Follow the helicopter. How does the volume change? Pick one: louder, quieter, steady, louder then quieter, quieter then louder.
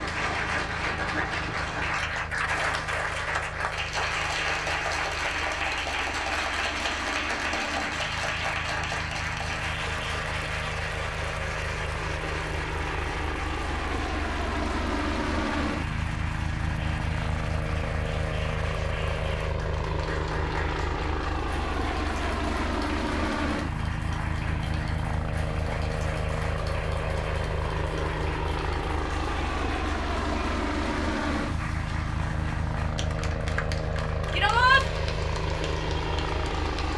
louder.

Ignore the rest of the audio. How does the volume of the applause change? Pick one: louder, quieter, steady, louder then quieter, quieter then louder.
quieter.